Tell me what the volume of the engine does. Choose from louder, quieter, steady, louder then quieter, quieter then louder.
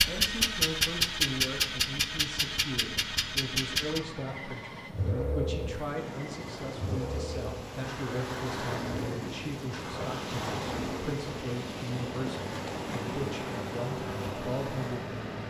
quieter.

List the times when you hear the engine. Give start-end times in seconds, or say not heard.
0.0-15.4.